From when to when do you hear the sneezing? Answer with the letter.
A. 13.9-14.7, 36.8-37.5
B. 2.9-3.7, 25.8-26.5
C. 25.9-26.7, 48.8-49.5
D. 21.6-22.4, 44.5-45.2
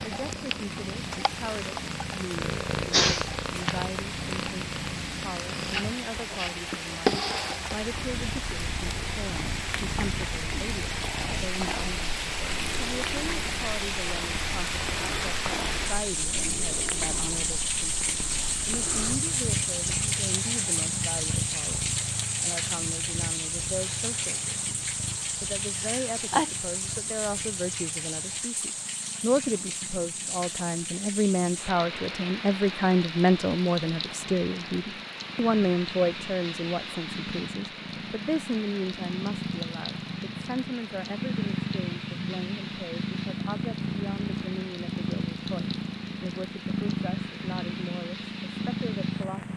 B.